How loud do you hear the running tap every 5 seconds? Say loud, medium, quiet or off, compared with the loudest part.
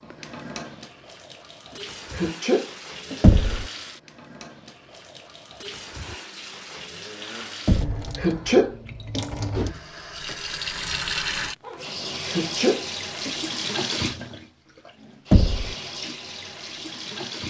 medium, medium, loud, medium.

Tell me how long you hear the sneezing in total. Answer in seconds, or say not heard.
3 s.